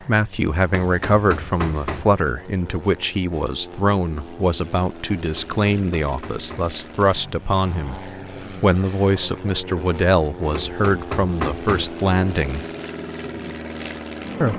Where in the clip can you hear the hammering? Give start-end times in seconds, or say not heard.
0.7-2.1, 5.3-6.8, 10.5-11.9.